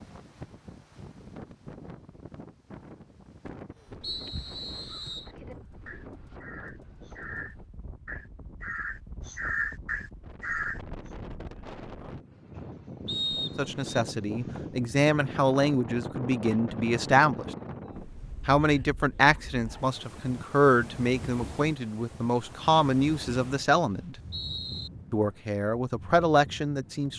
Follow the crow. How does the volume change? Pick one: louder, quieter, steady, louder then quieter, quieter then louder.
louder.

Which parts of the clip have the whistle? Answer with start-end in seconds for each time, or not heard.
4.0-5.3, 13.1-14.1, 23.4-24.9.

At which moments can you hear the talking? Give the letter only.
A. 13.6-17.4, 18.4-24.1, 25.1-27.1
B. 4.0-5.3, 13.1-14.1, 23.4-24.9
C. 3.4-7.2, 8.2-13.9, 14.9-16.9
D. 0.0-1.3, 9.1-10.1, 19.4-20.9
A.